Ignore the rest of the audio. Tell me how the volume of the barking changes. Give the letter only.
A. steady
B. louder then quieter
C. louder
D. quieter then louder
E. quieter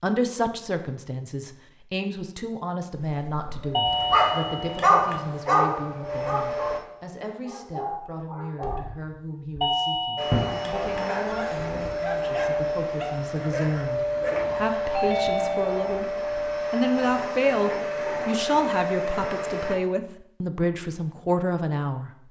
E.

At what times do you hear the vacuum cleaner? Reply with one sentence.
You can hear the vacuum cleaner from 3.6 to 6.8 s and from 10.2 to 19.8 s.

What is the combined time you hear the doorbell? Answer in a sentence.
The doorbell can be heard for 4 seconds in total.